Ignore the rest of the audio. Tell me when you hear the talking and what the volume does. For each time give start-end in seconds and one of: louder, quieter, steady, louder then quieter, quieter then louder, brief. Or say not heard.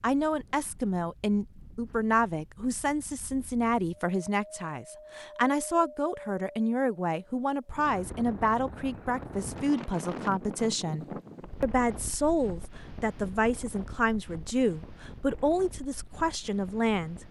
0.0-17.2 steady.